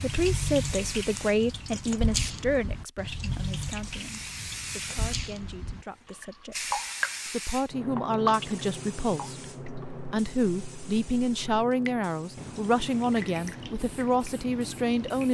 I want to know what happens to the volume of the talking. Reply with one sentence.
The loudness of the talking goes down, then up.